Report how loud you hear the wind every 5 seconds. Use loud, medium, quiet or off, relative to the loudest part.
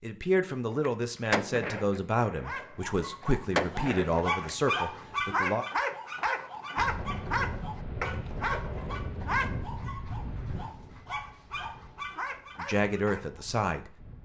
off, loud, medium.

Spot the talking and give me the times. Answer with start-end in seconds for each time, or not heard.
0.0-5.7, 12.6-14.2.